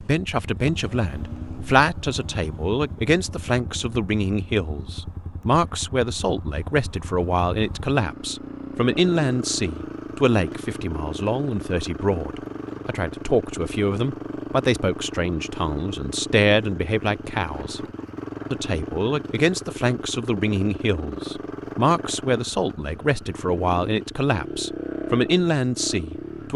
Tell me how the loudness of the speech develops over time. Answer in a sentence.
The loudness of the speech stays about the same.